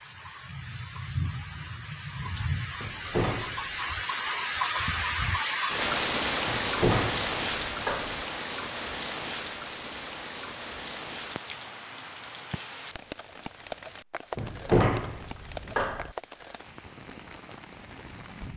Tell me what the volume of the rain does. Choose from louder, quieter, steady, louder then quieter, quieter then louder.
louder then quieter.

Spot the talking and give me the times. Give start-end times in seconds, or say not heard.
not heard.